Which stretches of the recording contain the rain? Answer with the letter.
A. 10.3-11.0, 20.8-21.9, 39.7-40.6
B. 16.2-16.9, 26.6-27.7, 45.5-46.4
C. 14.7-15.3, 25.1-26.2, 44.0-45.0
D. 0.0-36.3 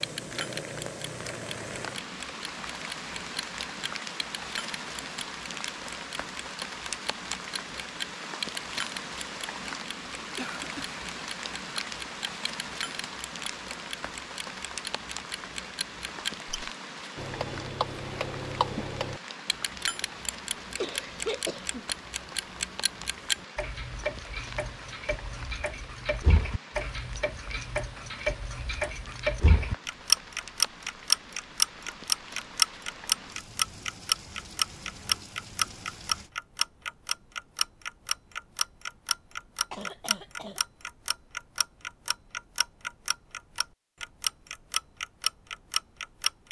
D.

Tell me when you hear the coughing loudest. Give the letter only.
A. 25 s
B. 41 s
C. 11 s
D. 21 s
D.